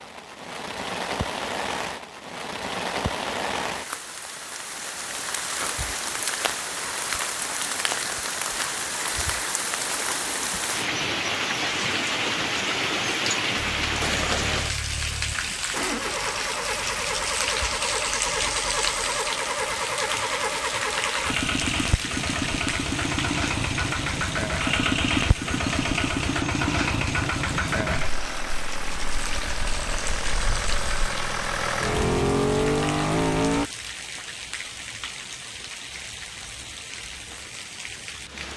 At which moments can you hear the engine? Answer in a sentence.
You can hear the engine from 13.6 to 33.7 s.